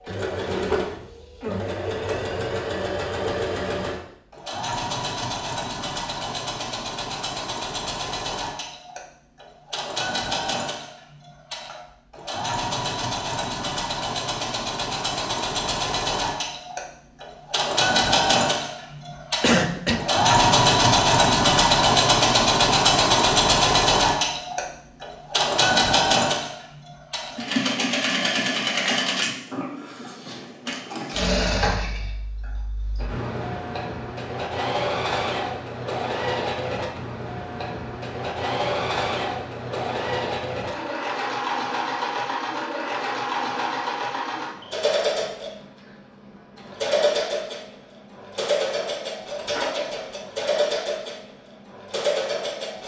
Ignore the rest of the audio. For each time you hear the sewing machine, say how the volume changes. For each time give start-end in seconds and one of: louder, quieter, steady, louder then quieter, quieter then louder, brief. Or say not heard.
0.0-52.8 louder then quieter.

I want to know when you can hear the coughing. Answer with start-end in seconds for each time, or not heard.
19.4-20.1.